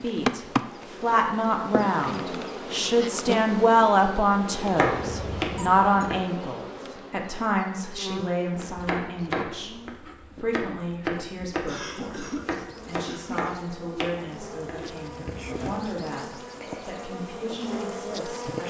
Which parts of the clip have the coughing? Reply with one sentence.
You can hear the coughing from 11.7 to 13.6 s.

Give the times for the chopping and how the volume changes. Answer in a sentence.
You can hear the chopping briefly from 4.8 to 6.2 s; and from 8.6 to 15.8 s, getting quieter.